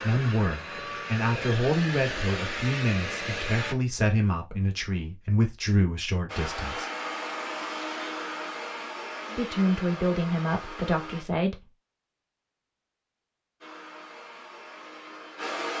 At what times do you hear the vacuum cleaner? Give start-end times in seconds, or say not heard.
0.0-3.8, 6.2-11.2, 13.6-15.7.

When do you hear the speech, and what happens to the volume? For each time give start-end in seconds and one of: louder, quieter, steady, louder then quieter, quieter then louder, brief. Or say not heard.
0.0-6.9 steady
9.3-11.7 brief.